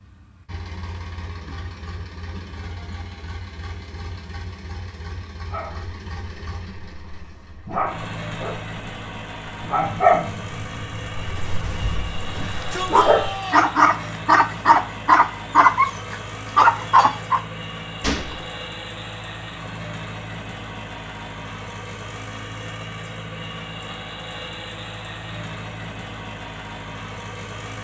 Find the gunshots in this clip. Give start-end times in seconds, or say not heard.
18.0-18.5.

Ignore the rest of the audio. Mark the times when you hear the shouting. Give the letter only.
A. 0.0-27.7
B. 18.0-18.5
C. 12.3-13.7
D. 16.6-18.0
C.